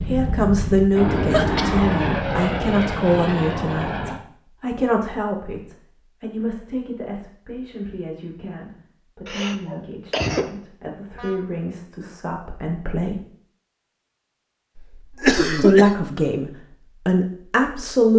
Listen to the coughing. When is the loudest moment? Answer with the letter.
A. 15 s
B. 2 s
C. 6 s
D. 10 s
A.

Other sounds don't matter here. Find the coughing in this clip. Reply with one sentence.
You can hear the coughing from 1.3 to 1.9 s, from 9.2 to 10.4 s and from 14.8 to 15.9 s.